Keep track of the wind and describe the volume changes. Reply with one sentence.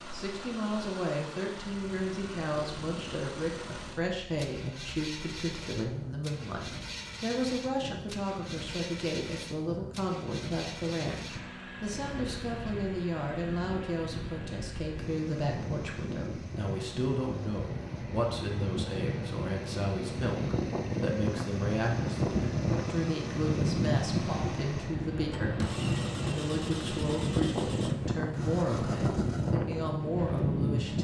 The loudness of the wind goes up.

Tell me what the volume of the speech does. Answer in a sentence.
The loudness of the speech stays about the same.